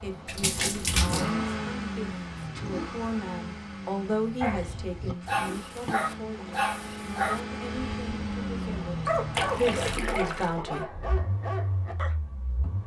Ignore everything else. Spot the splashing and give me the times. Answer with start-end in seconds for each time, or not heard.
0.2-1.4, 5.8-6.7, 9.3-10.6.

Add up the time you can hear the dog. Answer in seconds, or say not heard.
8 s.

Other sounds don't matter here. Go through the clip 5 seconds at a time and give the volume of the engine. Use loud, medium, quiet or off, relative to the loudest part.
loud, loud, medium.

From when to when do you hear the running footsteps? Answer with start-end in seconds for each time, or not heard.
not heard.